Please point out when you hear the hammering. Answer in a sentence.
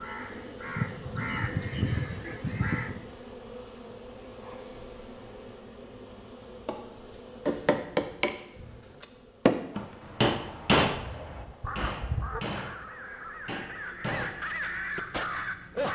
The hammering can be heard from 7.5 to 14.2 s.